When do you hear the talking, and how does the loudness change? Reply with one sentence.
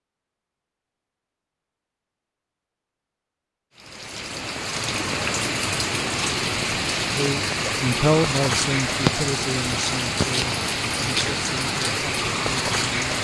The talking can be heard from 7.1 to 13.1 s, getting quieter.